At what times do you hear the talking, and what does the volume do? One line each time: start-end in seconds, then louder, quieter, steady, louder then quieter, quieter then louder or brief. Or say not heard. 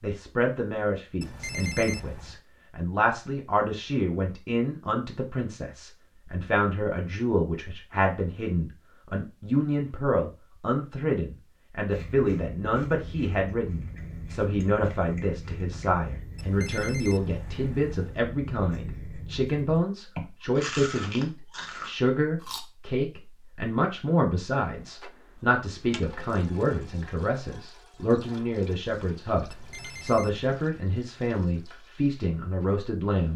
0.0-33.3 steady.